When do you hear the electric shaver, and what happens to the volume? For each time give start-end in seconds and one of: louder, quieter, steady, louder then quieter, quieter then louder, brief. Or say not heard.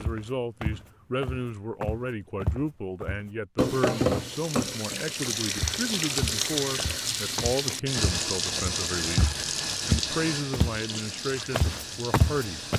not heard.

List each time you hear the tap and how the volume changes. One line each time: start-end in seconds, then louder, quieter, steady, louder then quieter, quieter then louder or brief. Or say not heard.
3.5-12.7 quieter.